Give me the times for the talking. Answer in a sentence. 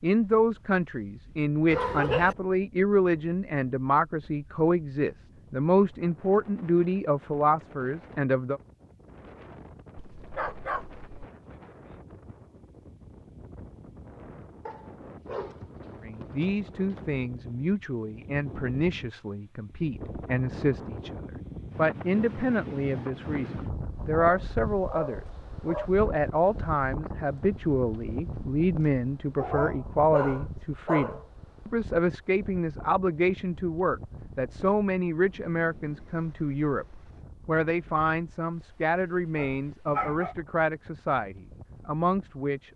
You can hear the talking from 0.0 to 8.6 s, from 16.0 to 36.9 s and from 37.5 to 42.7 s.